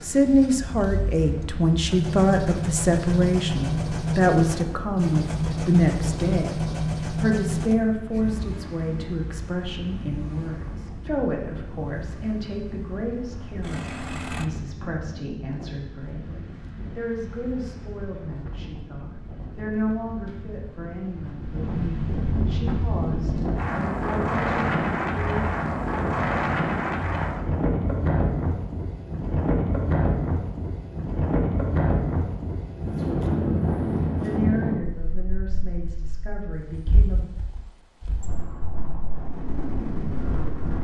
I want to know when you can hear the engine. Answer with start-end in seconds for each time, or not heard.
0.0-14.4.